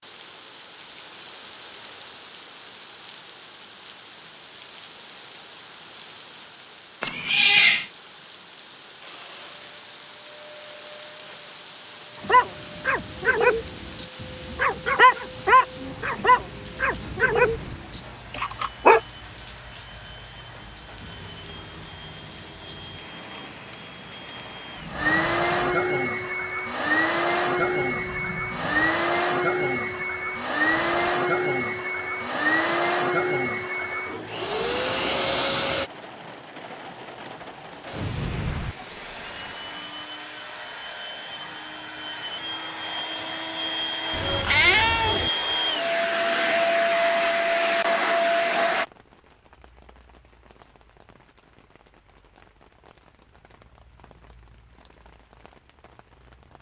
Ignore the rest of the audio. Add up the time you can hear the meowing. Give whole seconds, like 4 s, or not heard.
2 s.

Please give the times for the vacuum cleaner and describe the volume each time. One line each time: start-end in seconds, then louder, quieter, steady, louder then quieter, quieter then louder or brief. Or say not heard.
9.0-35.9 louder
37.9-48.9 louder.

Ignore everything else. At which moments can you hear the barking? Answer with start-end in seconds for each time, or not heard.
12.2-19.0.